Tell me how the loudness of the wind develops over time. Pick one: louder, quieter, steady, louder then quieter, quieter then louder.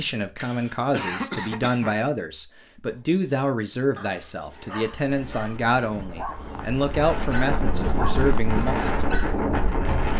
louder.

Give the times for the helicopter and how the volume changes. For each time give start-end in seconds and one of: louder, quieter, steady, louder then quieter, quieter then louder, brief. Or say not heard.
not heard.